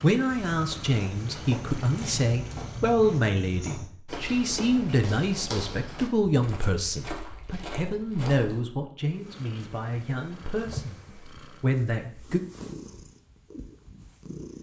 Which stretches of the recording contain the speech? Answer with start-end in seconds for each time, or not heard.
0.0-12.4.